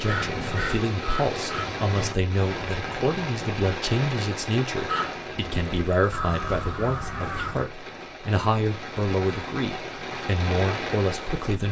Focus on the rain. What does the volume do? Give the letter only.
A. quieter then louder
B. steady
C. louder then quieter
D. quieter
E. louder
A.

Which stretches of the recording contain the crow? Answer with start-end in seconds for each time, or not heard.
0.0-1.6, 4.8-7.7.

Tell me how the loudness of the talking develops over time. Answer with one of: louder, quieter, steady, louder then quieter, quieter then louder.
steady.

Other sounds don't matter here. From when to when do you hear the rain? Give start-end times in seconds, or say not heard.
0.0-11.6.